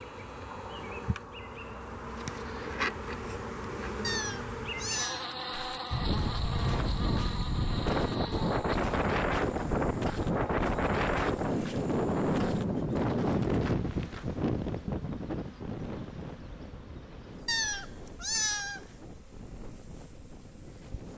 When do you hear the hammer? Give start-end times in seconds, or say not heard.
not heard.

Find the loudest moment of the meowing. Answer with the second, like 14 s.
18 s.